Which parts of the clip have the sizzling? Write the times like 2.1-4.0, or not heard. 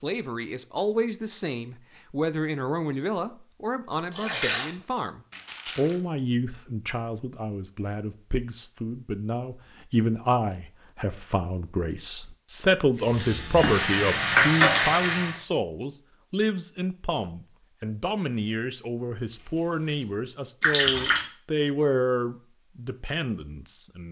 12.9-15.3.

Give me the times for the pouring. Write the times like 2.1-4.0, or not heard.
4.1-4.7, 20.6-21.2.